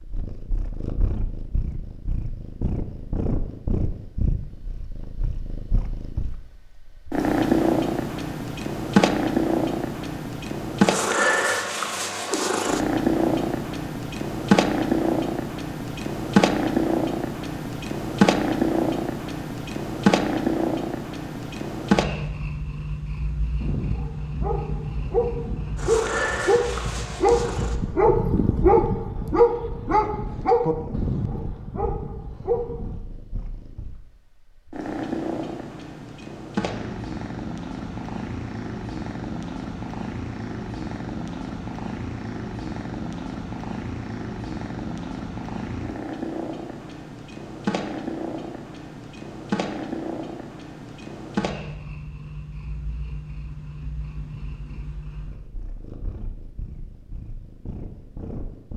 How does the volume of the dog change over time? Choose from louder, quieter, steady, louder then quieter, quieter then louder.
louder then quieter.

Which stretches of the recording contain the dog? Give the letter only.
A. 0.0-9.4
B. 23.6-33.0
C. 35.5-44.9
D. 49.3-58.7
B.